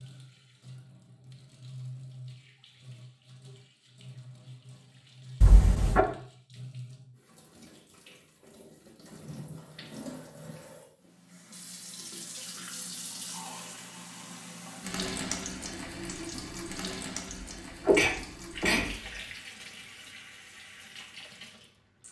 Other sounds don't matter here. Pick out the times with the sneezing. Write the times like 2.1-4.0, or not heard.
5.4-6.0, 17.9-18.9.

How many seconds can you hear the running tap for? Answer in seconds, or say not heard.
22 s.